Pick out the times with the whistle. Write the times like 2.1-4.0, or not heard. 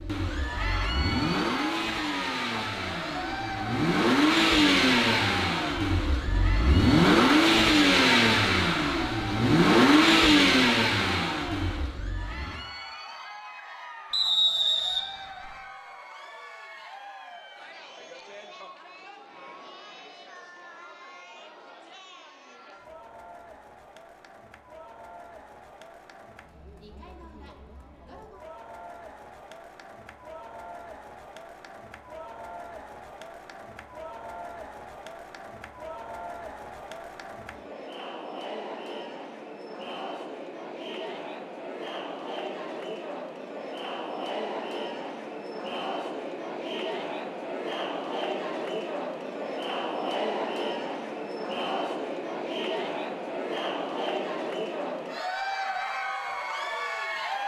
14.1-15.5.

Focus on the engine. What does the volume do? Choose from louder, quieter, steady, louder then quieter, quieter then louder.
louder.